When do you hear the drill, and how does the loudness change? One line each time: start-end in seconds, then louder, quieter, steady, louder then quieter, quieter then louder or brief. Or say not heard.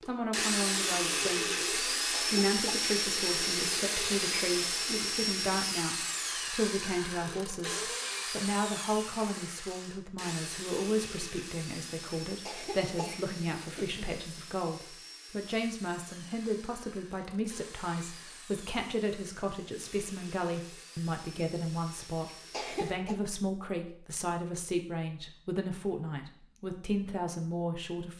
0.0-23.0 quieter.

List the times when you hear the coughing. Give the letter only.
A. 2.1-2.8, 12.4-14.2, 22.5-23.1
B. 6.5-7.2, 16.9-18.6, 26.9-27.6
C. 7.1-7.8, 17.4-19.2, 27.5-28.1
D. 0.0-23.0
A.